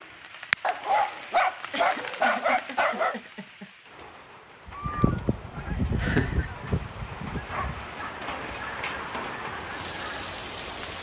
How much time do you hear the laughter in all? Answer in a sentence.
You can hear the laughter for 3 seconds altogether.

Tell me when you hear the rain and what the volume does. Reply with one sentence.
The rain can be heard from 0.0 to 10.9 s, getting quieter then louder.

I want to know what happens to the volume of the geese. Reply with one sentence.
The loudness of the geese goes down.